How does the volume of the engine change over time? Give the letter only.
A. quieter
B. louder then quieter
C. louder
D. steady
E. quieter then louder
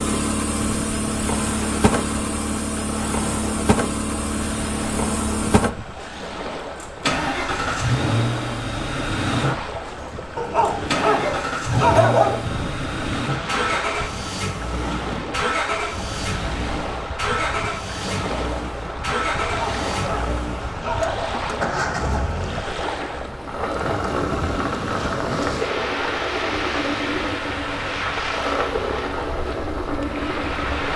D.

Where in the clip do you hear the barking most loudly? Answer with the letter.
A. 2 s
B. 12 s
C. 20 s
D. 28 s
B.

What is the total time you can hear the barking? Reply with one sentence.
The barking can be heard for 4 seconds in total.